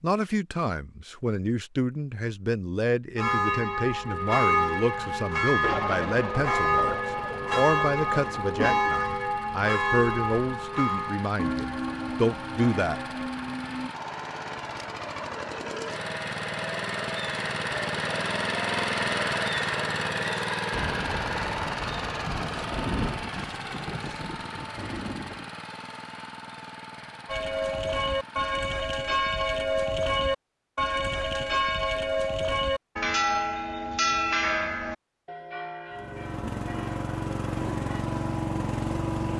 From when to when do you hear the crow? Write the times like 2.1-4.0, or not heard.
not heard.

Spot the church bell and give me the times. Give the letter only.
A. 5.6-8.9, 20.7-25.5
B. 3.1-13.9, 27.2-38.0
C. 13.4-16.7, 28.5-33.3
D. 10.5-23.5
B.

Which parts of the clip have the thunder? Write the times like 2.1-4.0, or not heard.
5.6-8.9, 20.7-25.5.